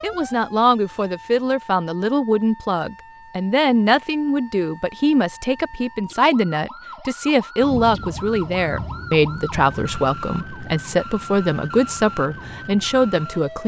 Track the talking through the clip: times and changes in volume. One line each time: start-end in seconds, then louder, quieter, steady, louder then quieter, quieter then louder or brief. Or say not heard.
0.0-13.6 steady.